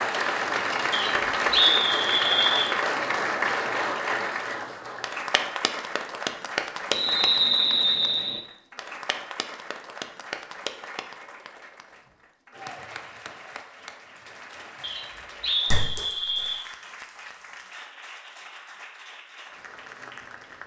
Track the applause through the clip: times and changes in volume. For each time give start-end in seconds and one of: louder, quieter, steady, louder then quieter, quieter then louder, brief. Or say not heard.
0.0-20.6 quieter.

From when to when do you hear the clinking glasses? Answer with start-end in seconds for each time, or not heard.
15.7-16.6.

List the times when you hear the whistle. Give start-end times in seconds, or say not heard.
0.9-2.8, 6.9-8.4, 14.8-16.6.